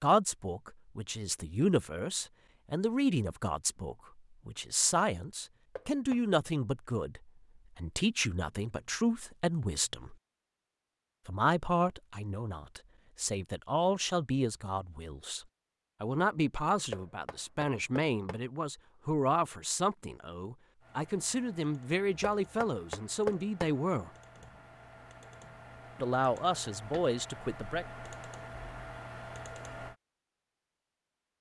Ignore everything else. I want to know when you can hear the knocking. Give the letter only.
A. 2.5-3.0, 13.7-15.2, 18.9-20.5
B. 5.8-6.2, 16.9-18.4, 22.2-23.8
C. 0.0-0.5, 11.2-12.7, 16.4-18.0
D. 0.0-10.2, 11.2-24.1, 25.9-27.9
B.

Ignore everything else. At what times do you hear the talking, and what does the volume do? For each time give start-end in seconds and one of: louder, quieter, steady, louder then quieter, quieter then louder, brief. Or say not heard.
0.0-10.2 steady
11.2-24.1 steady
25.9-27.9 brief.